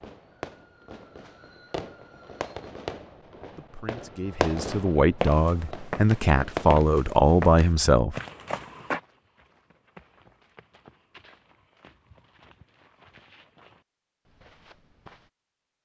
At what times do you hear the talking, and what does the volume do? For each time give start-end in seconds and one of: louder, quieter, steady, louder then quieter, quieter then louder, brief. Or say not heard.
3.5-8.2 louder.